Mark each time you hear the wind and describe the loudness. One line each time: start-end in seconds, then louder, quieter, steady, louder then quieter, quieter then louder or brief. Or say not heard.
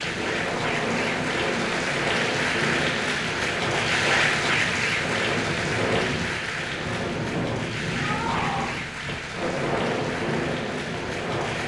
0.0-11.6 steady.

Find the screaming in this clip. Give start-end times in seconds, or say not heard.
8.0-8.8.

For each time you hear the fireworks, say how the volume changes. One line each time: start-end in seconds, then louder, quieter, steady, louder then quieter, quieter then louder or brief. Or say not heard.
not heard.